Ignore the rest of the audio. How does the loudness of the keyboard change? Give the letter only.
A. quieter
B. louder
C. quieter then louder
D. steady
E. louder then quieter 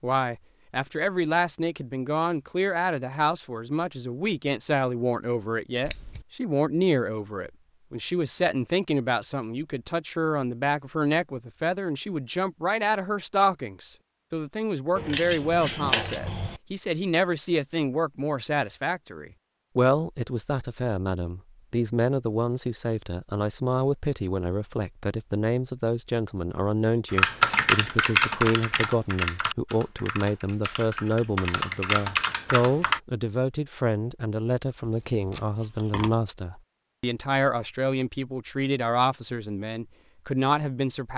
C.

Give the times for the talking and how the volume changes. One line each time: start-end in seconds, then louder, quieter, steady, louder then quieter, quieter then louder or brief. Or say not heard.
0.0-41.1 steady.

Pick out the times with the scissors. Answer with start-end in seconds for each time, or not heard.
5.8-6.2, 14.9-16.6, 34.9-36.1.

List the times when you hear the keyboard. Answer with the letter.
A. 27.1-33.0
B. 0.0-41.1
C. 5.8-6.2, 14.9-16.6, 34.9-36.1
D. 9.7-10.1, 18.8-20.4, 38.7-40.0
A.